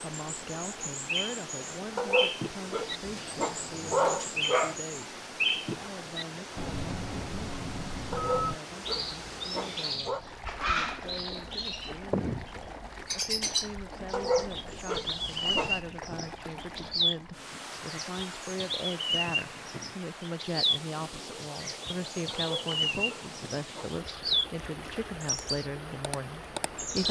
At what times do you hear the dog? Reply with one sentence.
The dog can be heard from 1.9 to 4.8 s, from 8.1 to 10.2 s, from 14.1 to 15.8 s and from 22.4 to 23.9 s.